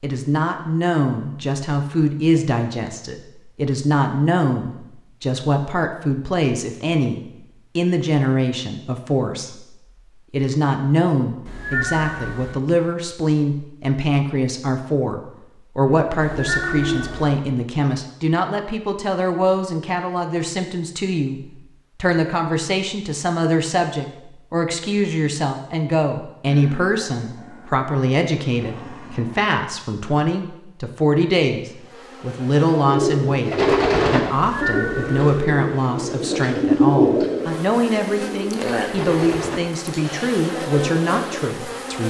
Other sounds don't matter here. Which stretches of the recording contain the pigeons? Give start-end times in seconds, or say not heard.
32.8-41.5.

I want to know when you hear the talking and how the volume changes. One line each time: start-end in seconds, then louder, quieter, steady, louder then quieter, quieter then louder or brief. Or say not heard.
0.0-42.0 steady.